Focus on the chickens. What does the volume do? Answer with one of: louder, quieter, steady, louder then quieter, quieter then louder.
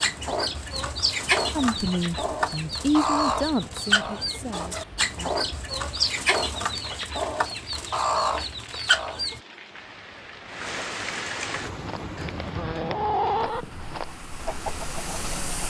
steady.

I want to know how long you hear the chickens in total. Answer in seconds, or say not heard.
13 s.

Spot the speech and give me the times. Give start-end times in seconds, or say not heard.
1.6-5.3.